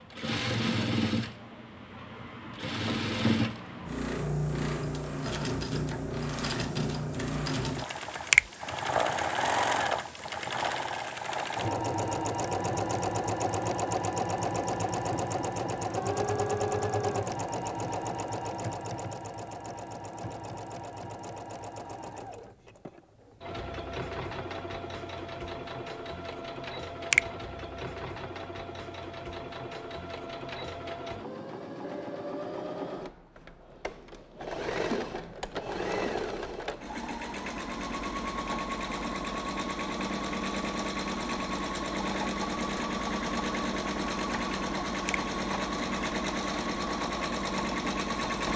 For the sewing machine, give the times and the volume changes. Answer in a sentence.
You can hear the sewing machine from 0.0 to 48.5 s, getting quieter then louder.